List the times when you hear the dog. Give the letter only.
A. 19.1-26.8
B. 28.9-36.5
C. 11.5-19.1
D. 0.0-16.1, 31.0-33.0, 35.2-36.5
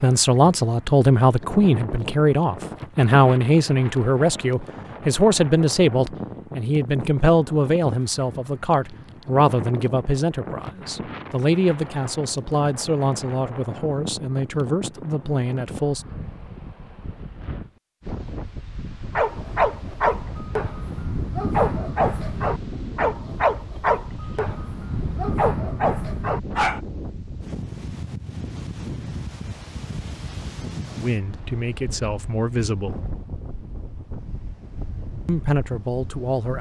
A.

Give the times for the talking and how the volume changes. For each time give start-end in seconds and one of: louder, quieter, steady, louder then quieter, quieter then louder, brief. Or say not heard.
0.0-16.1 quieter
31.0-33.0 brief
35.2-36.5 brief.